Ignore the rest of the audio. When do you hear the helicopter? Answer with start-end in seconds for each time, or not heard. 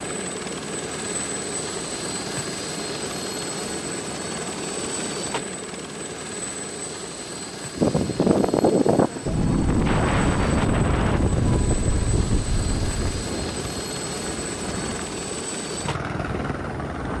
0.0-17.1.